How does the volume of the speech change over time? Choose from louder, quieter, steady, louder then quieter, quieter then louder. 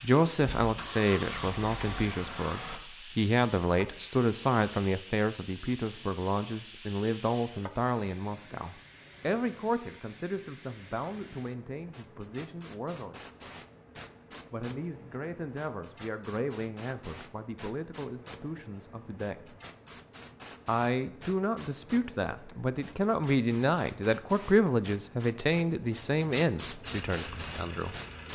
quieter then louder.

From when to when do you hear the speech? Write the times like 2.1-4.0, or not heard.
0.0-13.2, 14.5-19.4, 20.6-27.9.